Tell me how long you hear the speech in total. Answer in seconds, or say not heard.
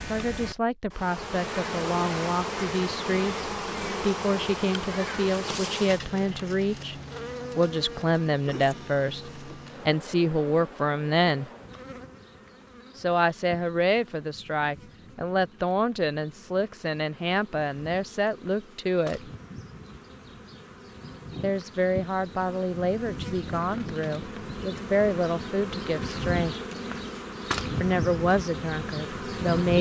24 s.